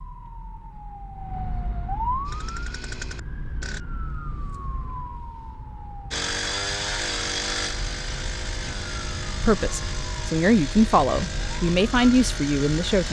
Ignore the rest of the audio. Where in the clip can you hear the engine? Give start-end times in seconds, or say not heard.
2.2-3.8, 6.1-13.0.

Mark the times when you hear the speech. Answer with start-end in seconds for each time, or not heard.
9.4-13.0.